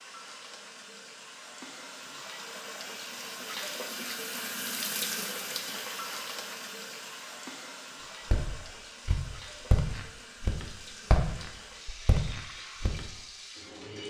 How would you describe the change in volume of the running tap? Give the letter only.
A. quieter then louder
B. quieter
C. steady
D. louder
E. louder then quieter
E.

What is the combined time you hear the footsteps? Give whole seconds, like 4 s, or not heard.
5 s.